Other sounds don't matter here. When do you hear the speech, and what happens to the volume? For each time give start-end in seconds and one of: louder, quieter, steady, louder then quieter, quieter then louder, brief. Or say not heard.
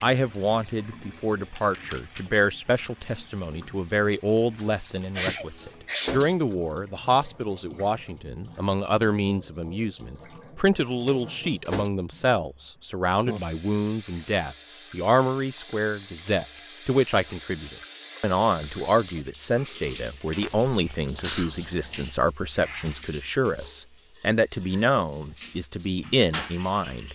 0.0-27.1 steady.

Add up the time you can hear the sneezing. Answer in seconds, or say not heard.
2 s.